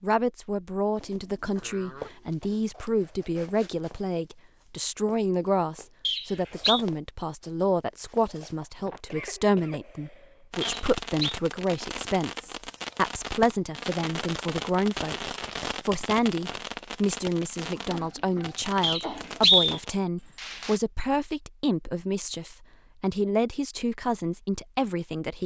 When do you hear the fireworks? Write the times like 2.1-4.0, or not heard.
10.5-20.8.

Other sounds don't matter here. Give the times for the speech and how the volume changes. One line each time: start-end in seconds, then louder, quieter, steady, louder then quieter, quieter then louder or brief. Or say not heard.
0.0-25.4 steady.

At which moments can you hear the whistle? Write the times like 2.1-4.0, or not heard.
6.0-6.8, 10.6-11.3, 18.8-19.8.